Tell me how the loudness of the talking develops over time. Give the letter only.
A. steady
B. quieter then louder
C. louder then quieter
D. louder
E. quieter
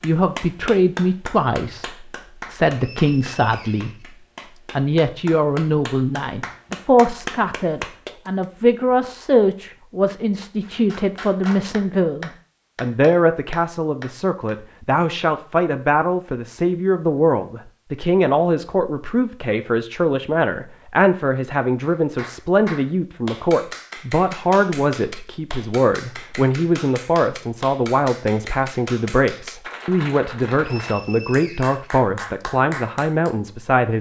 A.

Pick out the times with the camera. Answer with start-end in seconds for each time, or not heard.
not heard.